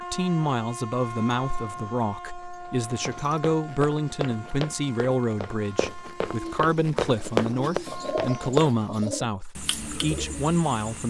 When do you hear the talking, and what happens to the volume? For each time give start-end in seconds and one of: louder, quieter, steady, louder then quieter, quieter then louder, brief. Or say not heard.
0.0-11.0 steady.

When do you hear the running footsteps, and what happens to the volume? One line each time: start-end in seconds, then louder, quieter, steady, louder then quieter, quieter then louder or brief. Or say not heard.
3.0-8.7 louder.